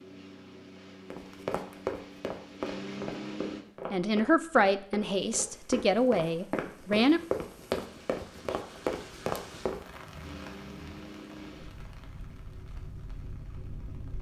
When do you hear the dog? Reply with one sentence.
You can't hear the dog here.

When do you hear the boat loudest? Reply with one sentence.
The loudest moment of the boat is at 3 seconds.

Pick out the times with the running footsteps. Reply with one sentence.
The running footsteps can be heard from 1.1 to 9.8 s.